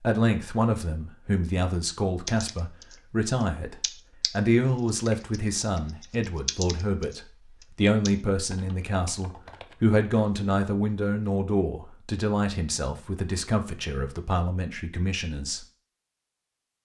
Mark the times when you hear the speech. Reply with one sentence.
You can hear the speech from 0.0 to 15.7 s.